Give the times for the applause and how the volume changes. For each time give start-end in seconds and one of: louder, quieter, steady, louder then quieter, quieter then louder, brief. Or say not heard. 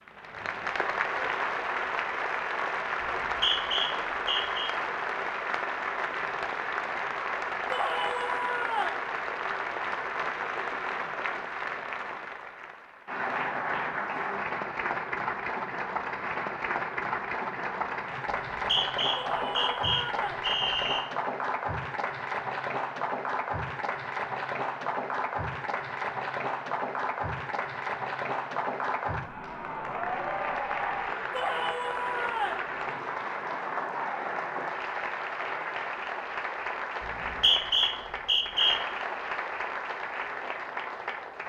0.0-41.4 steady.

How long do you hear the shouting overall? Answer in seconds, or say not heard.
4 s.